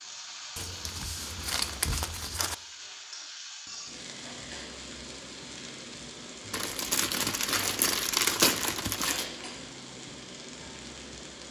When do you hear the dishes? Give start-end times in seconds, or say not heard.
not heard.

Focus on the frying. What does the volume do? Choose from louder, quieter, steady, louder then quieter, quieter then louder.
steady.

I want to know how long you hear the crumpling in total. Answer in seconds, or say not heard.
5 s.